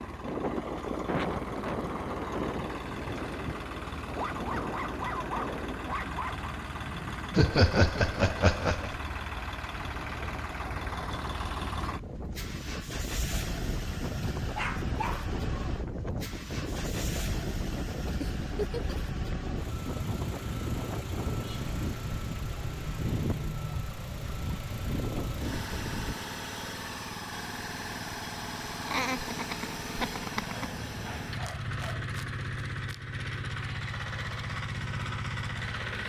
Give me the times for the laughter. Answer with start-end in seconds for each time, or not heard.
7.3-8.9, 18.2-19.0, 28.9-30.6.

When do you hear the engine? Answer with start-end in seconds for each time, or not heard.
0.0-36.0.